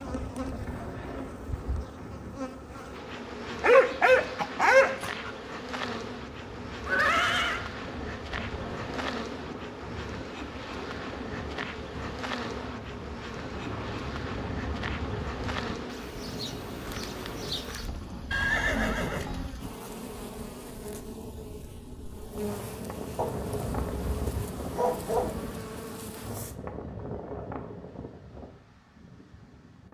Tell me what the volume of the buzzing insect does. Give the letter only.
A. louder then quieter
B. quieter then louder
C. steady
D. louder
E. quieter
C.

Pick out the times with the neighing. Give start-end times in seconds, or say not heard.
6.8-7.7, 18.3-19.5.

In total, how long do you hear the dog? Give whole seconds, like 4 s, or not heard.
4 s.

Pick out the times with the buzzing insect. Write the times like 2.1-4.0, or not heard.
0.0-26.6.